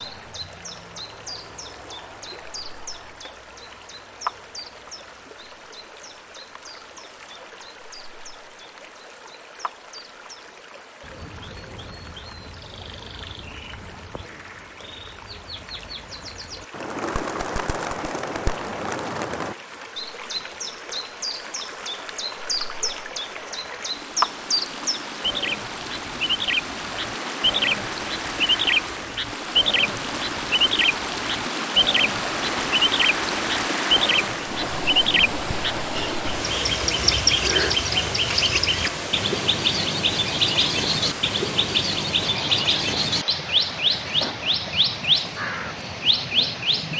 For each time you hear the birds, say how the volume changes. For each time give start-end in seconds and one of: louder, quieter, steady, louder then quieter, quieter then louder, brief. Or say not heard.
0.0-46.9 louder.